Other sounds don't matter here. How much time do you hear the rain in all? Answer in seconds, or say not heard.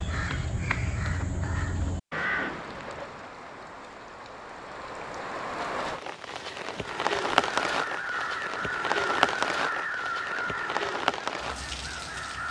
10 s.